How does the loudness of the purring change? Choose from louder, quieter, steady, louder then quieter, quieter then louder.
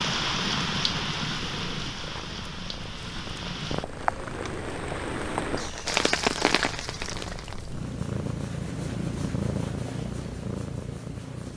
louder.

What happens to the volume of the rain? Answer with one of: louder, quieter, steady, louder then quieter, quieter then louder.
quieter then louder.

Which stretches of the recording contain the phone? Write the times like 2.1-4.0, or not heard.
not heard.